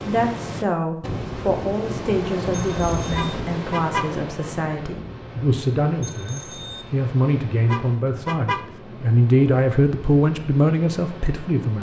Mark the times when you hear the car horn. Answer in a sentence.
You can hear the car horn from 3.1 to 4.1 s and from 7.7 to 8.7 s.